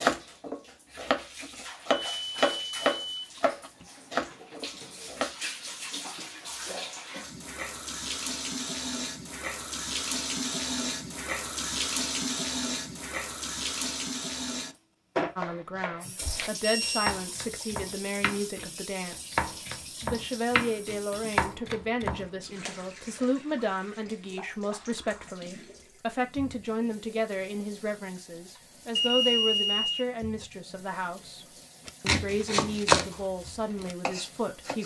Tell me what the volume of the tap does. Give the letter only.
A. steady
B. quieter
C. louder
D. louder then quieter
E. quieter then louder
D.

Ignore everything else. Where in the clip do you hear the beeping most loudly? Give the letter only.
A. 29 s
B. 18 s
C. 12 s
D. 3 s
A.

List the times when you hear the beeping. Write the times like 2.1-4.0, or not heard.
1.9-3.9, 16.6-17.1, 28.9-30.1.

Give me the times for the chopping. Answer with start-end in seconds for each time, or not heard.
0.0-5.3, 15.3-22.2, 31.9-34.8.